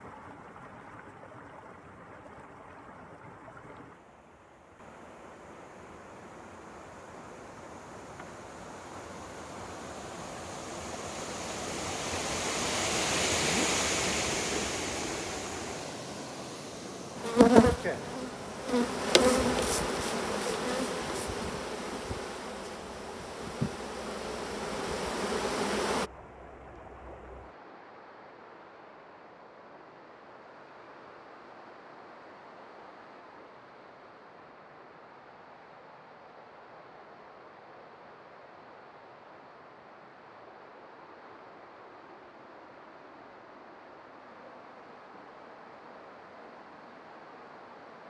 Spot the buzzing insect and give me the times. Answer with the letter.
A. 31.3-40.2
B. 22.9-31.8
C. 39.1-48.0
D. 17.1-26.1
D.